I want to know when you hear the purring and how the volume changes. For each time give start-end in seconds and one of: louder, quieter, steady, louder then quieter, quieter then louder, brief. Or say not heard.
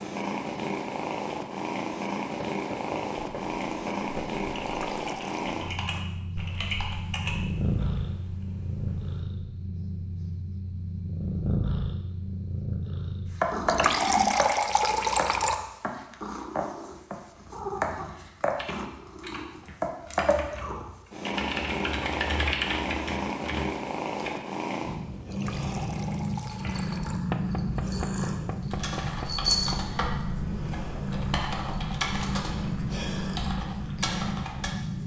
0.0-35.0 steady.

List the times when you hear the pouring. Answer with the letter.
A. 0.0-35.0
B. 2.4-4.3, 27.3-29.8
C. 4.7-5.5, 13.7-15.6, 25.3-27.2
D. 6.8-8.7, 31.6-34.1
C.